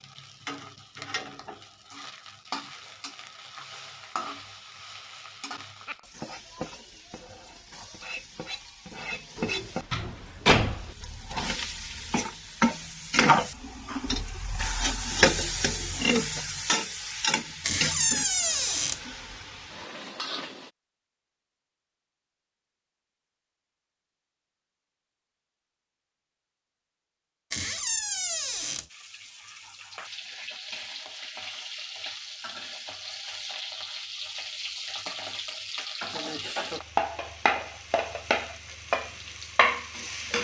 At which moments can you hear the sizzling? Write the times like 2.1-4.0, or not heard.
0.0-20.7, 28.9-40.3.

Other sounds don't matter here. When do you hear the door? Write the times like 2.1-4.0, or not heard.
9.3-10.9, 17.6-19.0, 27.5-28.9.